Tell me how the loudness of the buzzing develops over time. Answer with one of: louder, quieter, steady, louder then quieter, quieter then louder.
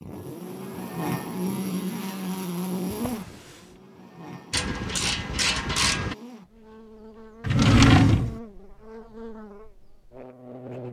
quieter.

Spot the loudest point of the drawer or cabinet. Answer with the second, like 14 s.
8 s.